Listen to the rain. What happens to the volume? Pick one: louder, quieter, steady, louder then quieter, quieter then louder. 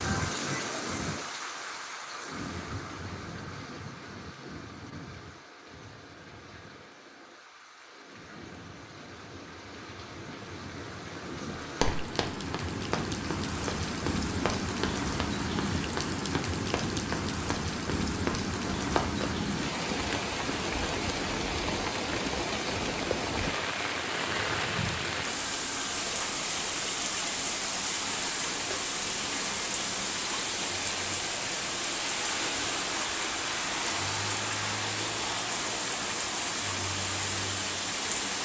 louder.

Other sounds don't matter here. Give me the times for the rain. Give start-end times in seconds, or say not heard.
0.0-38.4.